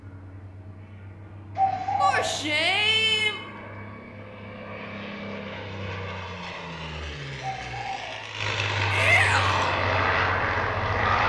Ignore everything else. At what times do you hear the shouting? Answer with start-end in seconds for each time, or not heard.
2.0-3.4, 8.9-9.8.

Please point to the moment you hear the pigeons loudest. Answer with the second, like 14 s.
2 s.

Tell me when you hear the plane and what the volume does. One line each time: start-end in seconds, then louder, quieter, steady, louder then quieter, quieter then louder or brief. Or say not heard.
0.0-11.2 louder.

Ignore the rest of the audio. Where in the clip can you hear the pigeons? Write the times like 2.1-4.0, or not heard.
1.6-2.4, 7.4-8.2.